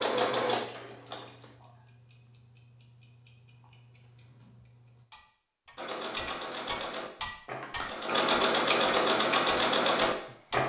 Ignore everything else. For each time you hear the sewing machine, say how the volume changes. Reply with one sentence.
You can hear the sewing machine briefly from 0.0 to 1.4 s; and from 5.8 to 10.6 s, getting louder.